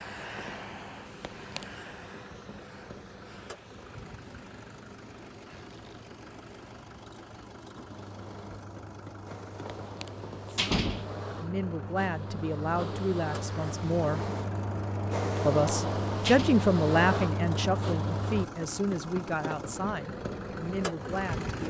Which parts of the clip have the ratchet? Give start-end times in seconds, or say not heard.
not heard.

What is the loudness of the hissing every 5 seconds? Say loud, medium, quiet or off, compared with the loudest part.
quiet, quiet, medium, loud, off.